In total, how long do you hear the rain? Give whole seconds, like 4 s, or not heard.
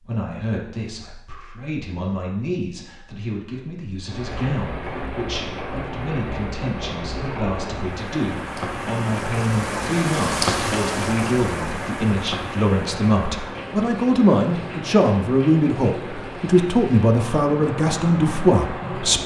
15 s.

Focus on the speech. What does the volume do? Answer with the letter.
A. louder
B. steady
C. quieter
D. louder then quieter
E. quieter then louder
A.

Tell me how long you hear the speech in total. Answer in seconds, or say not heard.
19 s.